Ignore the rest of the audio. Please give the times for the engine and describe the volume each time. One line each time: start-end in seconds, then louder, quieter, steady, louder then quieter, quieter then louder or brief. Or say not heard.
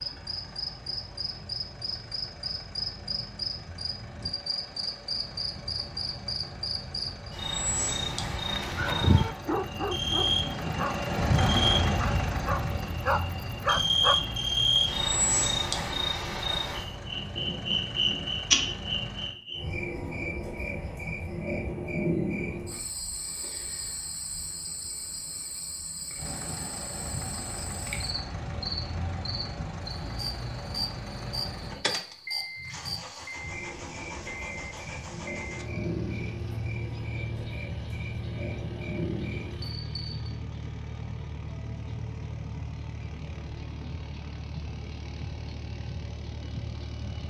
0.0-19.4 louder then quieter
26.1-47.2 steady.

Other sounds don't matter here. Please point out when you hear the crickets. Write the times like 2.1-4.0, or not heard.
0.0-40.4.